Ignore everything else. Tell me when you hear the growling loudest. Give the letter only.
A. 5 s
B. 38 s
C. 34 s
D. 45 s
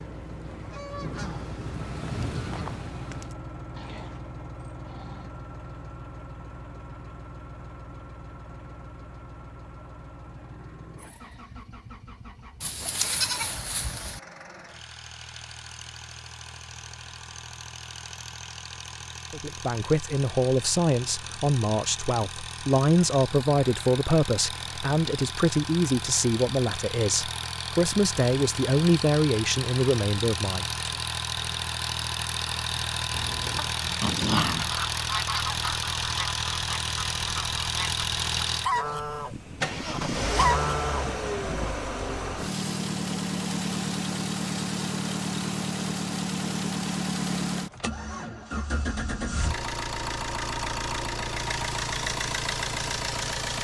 C.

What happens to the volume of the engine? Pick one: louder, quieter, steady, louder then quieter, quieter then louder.
louder.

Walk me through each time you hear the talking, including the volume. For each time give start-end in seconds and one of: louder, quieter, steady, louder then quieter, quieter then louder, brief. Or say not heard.
19.3-30.6 steady.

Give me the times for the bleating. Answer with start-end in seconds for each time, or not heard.
12.6-14.2.